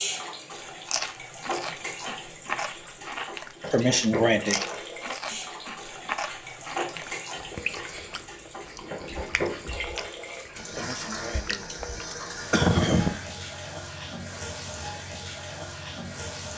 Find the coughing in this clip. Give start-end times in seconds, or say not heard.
3.7-4.6, 10.8-13.2.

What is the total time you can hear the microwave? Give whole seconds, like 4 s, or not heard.
not heard.